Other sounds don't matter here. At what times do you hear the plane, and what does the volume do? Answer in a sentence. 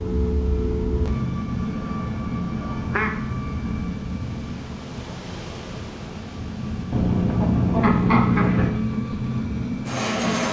The plane can be heard from 0.0 to 10.4 s, getting quieter then louder.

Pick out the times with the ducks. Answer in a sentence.
You can hear the ducks from 1.8 to 3.1 s and from 6.9 to 8.8 s.